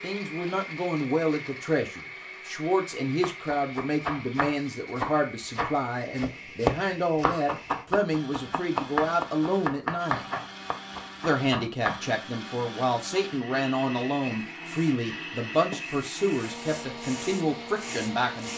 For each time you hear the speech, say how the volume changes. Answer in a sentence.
You can hear the speech from 0.0 to 10.2 s, at a steady volume; and from 11.2 to 18.5 s, at a steady volume.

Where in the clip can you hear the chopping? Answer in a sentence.
You can hear the chopping from 3.2 to 12.1 s.